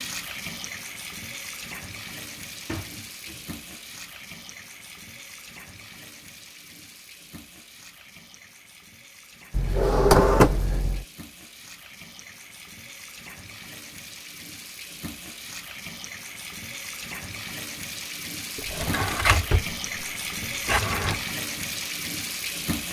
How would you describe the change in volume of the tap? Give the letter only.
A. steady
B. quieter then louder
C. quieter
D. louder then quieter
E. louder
B.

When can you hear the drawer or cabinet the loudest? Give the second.
10 s.